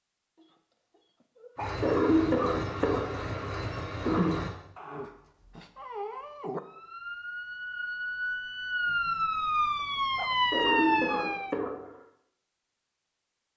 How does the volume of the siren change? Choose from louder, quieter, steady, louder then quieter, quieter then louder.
louder.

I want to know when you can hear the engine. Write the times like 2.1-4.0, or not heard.
1.6-4.5.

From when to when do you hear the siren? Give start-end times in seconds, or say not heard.
6.5-11.6.